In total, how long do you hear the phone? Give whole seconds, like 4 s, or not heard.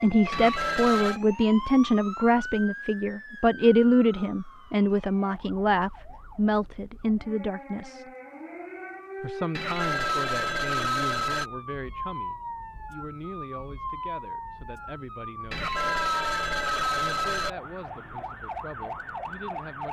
5 s.